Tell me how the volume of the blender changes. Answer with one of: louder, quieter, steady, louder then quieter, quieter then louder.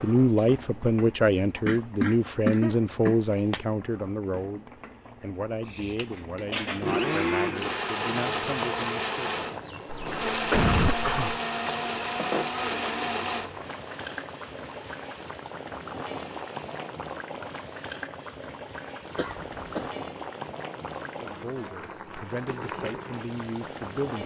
quieter.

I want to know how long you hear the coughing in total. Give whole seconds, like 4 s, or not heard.
4 s.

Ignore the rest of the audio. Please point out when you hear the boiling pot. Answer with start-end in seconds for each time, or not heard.
0.0-24.2.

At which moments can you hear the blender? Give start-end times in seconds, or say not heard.
5.7-16.9.